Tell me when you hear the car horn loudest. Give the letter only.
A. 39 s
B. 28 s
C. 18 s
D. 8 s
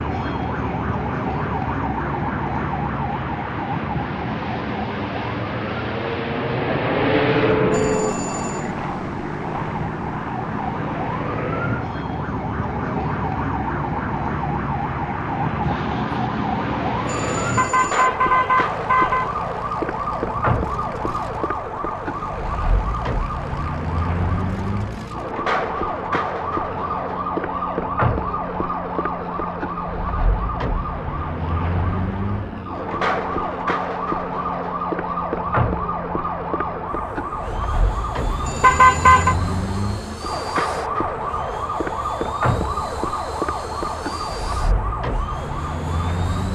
A.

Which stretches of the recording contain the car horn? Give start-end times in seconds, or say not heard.
7.2-8.2, 17.4-19.3, 38.2-39.4.